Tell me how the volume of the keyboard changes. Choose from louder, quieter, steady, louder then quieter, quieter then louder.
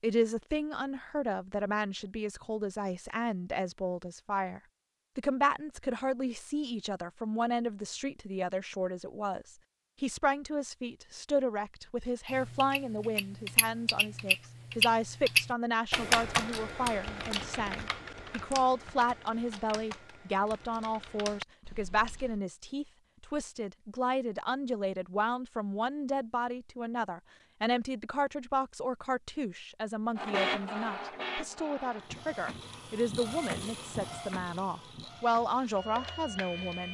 louder then quieter.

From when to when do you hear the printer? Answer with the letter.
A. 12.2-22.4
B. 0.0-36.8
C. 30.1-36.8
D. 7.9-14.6
C.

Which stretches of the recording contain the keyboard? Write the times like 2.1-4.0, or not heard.
12.2-22.4.